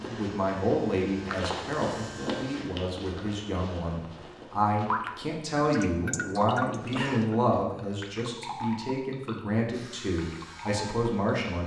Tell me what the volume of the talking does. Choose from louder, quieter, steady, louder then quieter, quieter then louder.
steady.